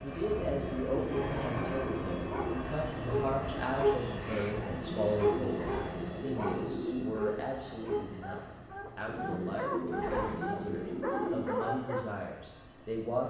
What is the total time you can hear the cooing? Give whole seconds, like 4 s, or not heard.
7 s.